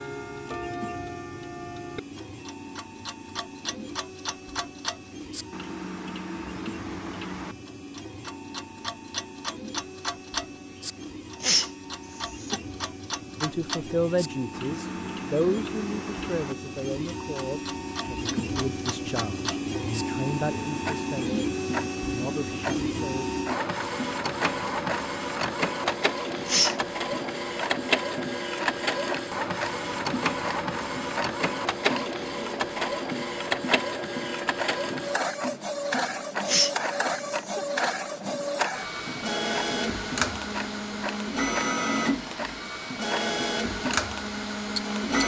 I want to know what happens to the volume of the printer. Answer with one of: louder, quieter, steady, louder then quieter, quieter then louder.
louder.